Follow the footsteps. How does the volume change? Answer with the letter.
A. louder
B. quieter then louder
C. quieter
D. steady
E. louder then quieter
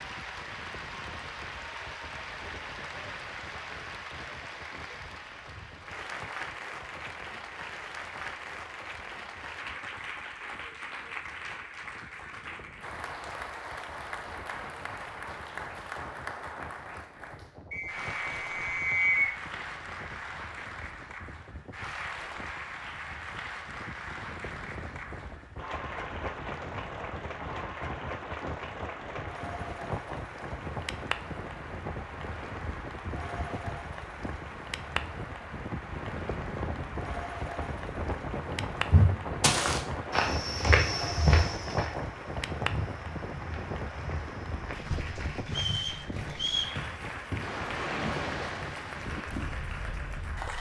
B.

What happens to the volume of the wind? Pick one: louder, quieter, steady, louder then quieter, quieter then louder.
louder.